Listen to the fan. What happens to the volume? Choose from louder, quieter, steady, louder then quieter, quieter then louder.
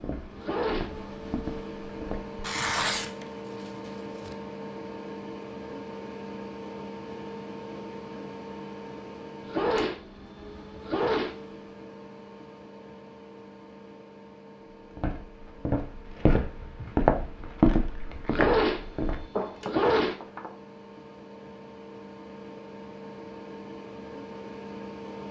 quieter then louder.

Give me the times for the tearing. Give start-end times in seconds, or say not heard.
2.4-4.3.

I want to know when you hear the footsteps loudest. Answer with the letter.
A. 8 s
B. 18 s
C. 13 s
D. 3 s
B.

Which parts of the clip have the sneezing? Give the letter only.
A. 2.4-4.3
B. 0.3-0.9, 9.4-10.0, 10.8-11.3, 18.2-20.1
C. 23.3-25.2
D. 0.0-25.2
B.